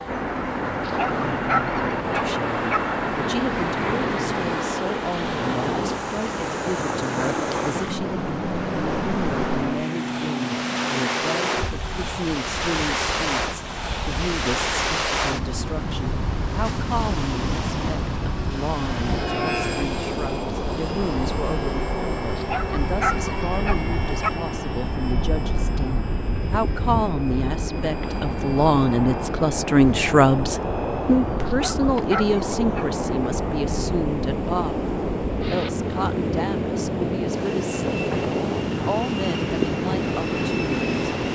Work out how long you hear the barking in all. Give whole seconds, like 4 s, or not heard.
5 s.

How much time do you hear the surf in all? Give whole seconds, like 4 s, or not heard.
41 s.